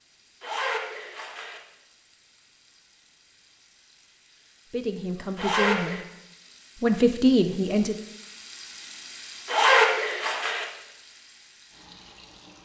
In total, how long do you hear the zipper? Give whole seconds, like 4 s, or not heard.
3 s.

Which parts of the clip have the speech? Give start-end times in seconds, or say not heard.
4.7-6.0, 6.8-8.0.